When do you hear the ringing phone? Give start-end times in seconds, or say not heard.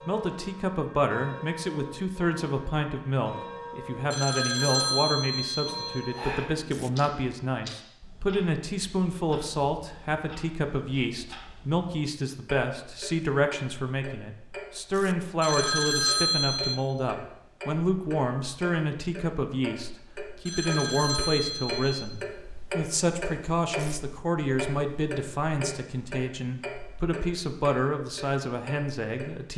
4.1-6.5, 15.4-16.8, 20.4-22.1.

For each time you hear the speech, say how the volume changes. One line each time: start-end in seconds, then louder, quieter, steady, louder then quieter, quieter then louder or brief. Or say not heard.
0.0-29.5 steady.